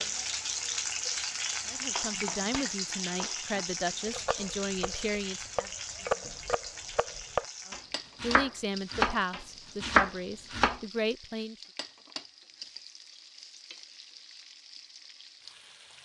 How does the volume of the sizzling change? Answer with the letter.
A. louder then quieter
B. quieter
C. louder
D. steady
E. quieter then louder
B.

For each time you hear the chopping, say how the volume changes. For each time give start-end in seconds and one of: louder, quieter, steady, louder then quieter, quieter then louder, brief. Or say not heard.
1.8-10.8 louder.